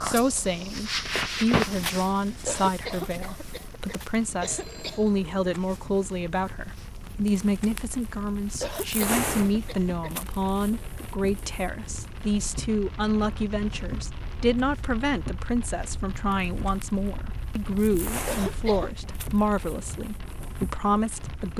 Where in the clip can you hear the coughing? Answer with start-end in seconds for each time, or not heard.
2.5-5.0, 8.6-10.2, 18.2-18.9.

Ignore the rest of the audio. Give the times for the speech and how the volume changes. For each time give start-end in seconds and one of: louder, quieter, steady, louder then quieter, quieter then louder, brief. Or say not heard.
0.0-21.5 steady.